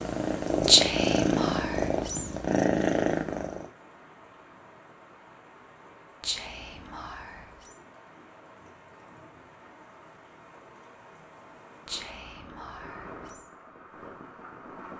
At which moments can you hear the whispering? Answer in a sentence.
The whispering can be heard from 0.7 to 2.2 s, from 6.2 to 7.8 s and from 11.8 to 13.4 s.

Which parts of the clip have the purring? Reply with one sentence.
The purring can be heard from 0.0 to 3.7 s.